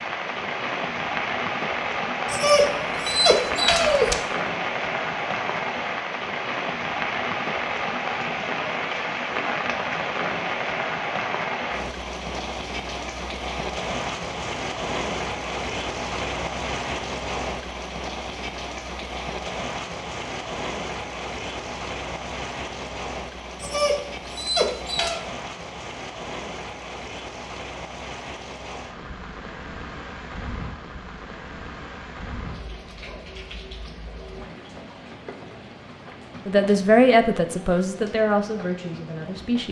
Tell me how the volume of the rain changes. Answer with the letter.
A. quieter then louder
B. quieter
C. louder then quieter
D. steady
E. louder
B.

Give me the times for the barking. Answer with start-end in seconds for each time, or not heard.
2.2-4.2, 23.6-25.2.